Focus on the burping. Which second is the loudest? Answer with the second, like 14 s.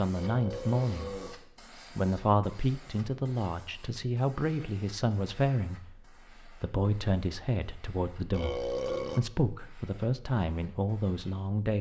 9 s.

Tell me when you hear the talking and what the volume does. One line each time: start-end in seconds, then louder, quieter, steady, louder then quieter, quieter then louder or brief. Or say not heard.
0.0-1.2 brief
1.9-11.7 steady.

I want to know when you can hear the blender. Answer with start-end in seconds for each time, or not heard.
not heard.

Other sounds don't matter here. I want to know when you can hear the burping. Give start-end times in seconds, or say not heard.
0.1-1.4, 8.3-9.2.